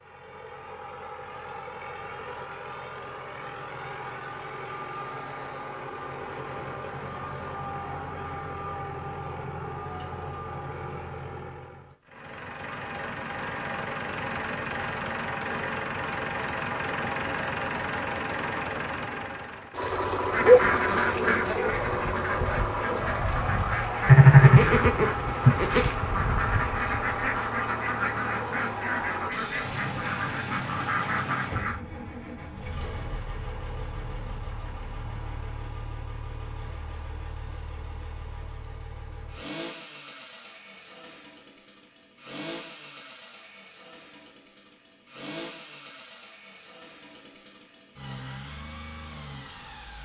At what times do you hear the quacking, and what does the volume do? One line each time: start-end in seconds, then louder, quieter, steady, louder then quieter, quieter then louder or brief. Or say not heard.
20.3-31.8 steady.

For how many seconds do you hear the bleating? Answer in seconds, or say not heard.
2 s.